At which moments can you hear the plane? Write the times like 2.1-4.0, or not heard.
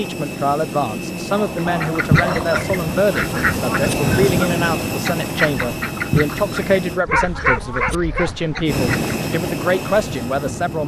0.0-7.0, 8.7-10.8.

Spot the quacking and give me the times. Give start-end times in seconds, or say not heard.
1.6-9.2.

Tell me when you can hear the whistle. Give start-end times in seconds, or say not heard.
not heard.